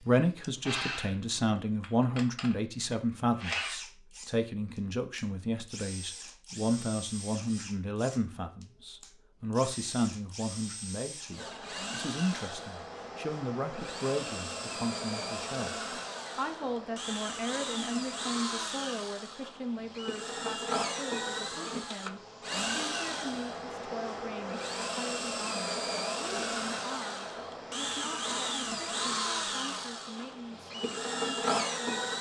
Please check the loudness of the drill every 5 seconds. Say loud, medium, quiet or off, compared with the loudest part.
medium, quiet, medium, medium, loud, loud, loud.